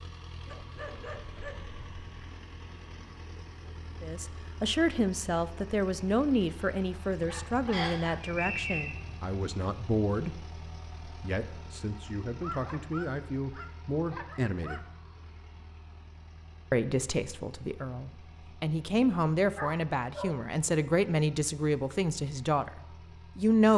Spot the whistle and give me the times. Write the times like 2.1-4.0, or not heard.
7.7-8.9.